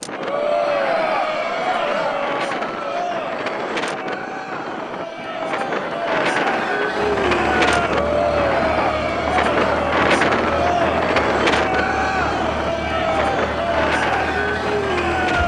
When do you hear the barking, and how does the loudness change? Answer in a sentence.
You can't hear the barking here.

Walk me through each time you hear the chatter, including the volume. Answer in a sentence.
The chatter can be heard from 0.0 to 15.4 s, getting quieter then louder.